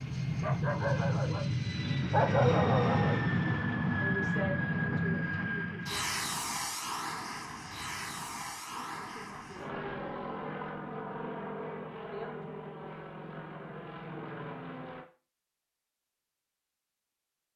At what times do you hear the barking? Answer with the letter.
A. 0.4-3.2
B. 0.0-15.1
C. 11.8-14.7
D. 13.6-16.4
A.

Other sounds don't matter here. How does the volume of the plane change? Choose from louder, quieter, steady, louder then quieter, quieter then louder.
quieter.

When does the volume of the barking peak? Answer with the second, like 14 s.
2 s.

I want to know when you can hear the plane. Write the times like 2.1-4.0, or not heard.
0.0-15.1.